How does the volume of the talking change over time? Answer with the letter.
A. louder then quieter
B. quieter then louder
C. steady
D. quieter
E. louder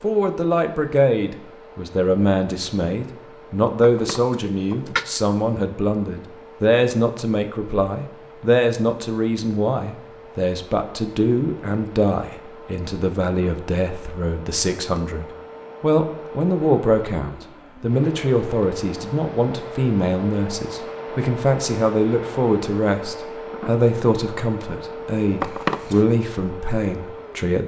C.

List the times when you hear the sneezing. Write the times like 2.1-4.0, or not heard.
3.8-5.0, 25.4-26.0.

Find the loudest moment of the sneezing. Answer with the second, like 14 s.
26 s.